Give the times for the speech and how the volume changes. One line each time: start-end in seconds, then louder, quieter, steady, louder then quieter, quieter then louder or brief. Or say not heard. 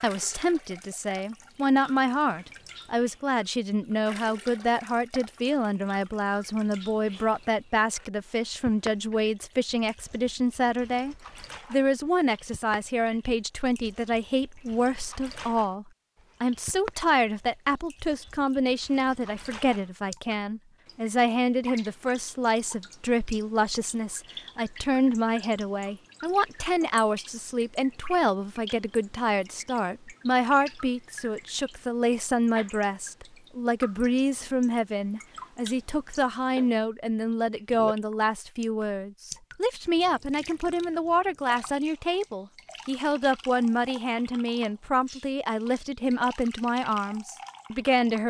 0.0-48.2 steady.